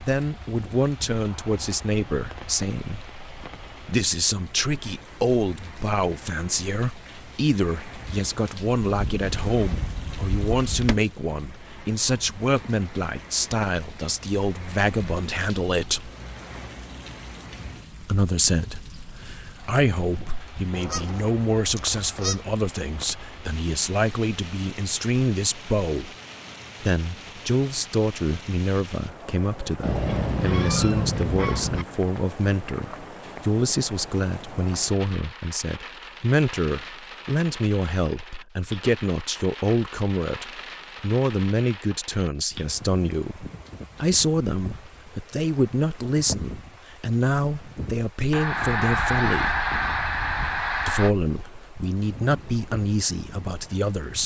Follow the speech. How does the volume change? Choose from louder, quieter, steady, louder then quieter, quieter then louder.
steady.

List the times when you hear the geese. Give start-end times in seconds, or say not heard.
8.8-11.1, 20.7-22.4, 29.8-31.9, 48.3-51.1.